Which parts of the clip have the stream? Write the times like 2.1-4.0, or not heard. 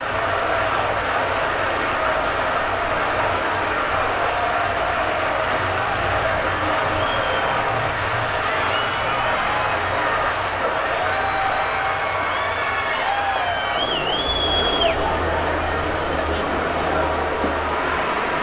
0.0-18.3.